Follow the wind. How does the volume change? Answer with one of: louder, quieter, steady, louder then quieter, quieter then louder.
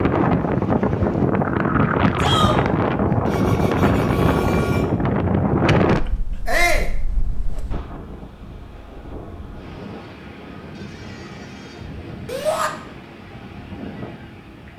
quieter.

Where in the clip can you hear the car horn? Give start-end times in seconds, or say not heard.
3.2-4.8, 10.8-11.9.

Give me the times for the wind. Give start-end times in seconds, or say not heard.
0.0-14.7.